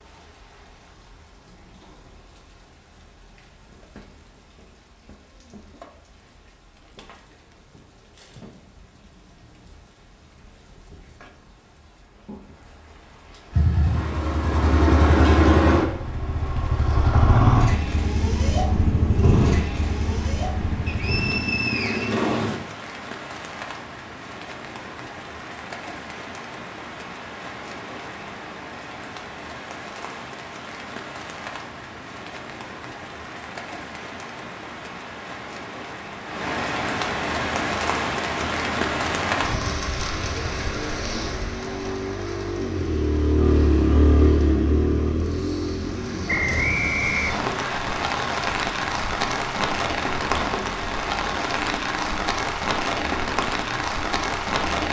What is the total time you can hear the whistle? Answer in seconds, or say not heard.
3 s.